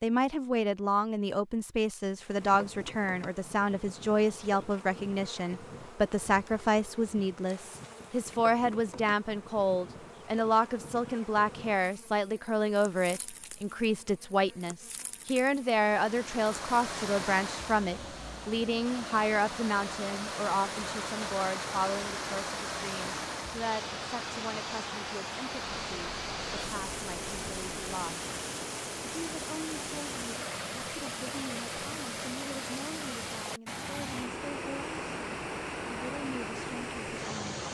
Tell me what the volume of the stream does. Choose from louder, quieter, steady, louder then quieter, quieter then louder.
steady.